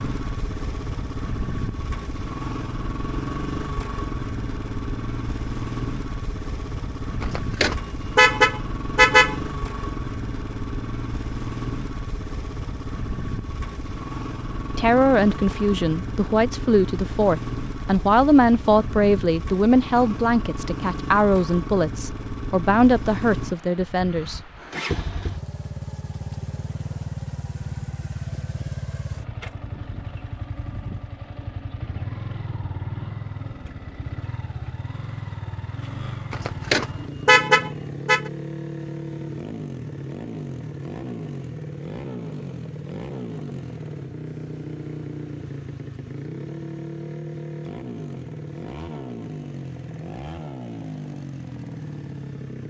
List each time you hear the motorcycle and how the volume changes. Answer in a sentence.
The motorcycle can be heard from 0.0 to 52.6 s, at a steady volume.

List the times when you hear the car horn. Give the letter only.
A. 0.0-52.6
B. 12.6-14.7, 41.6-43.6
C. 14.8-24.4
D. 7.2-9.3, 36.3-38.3
D.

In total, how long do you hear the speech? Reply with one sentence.
You can hear the speech for 10 seconds altogether.